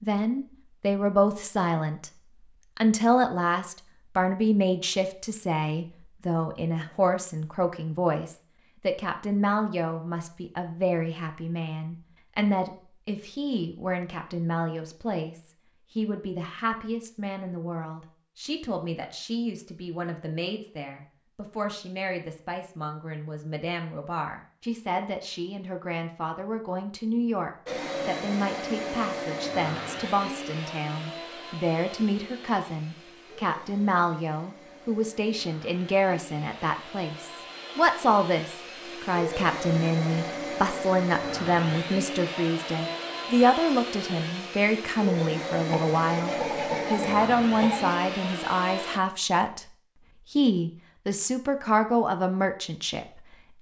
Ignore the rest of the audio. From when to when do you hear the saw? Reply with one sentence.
The saw can be heard from 45.6 to 48.0 s.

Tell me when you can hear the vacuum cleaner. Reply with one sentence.
The vacuum cleaner can be heard from 27.6 to 49.0 s.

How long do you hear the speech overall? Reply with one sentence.
You can hear the speech for 52 seconds altogether.